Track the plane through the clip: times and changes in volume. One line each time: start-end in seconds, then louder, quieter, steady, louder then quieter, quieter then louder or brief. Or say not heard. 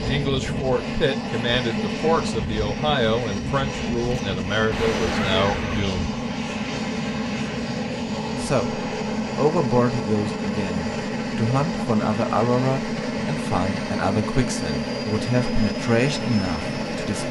0.0-17.2 steady.